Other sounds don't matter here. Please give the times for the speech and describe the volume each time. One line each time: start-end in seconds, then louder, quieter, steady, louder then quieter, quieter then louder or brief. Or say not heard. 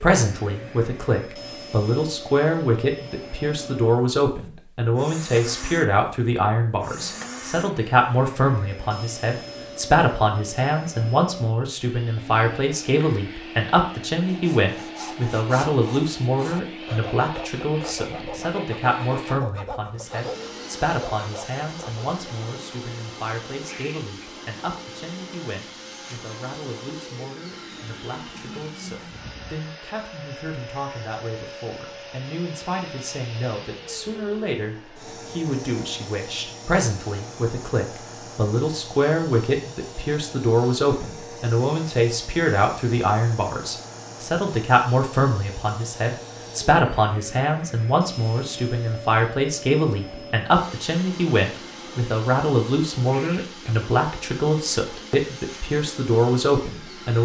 0.0-57.2 quieter then louder.